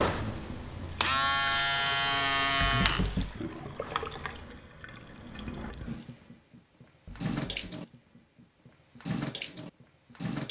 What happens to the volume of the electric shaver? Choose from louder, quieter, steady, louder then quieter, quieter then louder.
louder then quieter.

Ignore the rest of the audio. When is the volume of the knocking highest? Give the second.
3 s.